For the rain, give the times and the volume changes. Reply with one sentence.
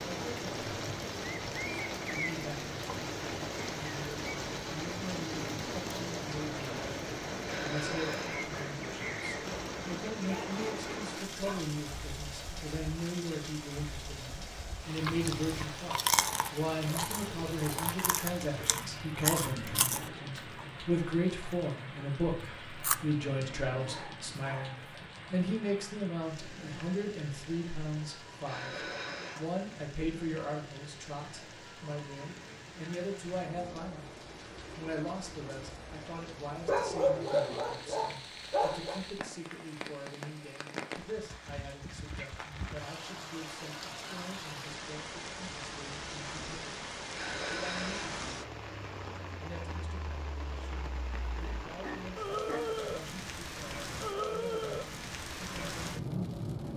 You can hear the rain from 0.0 to 56.7 s, getting quieter then louder.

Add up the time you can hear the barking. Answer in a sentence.
The barking can be heard for 6 seconds in total.